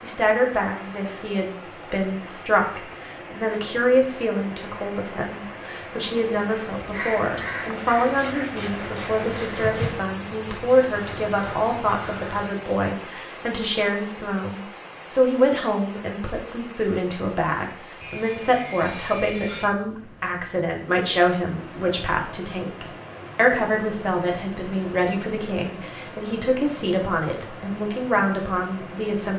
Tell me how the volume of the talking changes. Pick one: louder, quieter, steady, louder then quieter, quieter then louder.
steady.